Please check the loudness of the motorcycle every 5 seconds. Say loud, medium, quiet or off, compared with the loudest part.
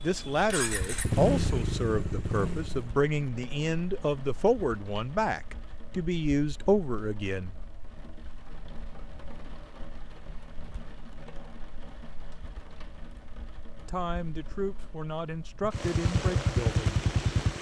loud, off, off, loud.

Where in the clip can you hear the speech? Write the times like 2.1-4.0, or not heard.
0.0-7.5, 13.8-17.0.